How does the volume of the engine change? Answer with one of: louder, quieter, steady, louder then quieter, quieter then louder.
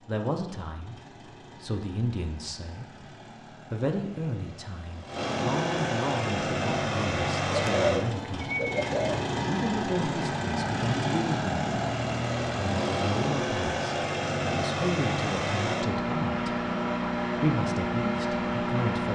louder.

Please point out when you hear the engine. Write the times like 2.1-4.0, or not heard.
0.0-19.1.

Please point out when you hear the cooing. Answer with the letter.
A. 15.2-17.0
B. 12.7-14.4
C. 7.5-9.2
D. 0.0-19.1
C.